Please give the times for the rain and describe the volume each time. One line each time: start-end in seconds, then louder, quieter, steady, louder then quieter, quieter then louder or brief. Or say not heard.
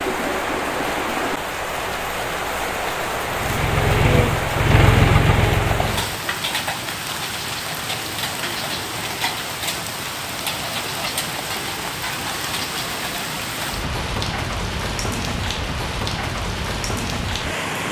0.0-17.8 steady.